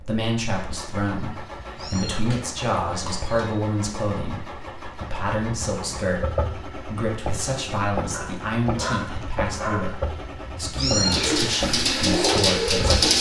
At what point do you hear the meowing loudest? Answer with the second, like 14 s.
11 s.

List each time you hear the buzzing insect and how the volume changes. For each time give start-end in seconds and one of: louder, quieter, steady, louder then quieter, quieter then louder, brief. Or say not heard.
not heard.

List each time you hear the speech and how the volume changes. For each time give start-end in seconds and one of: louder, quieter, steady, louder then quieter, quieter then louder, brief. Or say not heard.
0.0-12.9 steady.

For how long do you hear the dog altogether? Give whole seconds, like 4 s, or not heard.
2 s.